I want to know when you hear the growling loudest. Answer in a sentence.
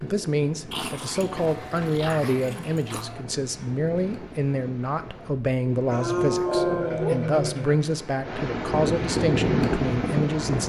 The loudest moment of the growling is at 7 seconds.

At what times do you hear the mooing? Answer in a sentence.
You can hear the mooing from 1.2 to 3.2 s and from 5.8 to 7.3 s.